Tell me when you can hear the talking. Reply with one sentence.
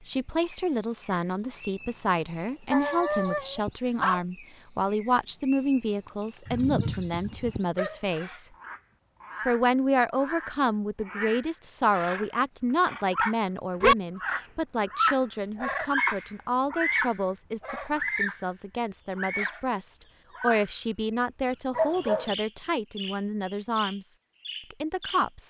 The talking can be heard from 0.1 to 8.4 s, from 9.4 to 24.1 s and from 24.7 to 25.4 s.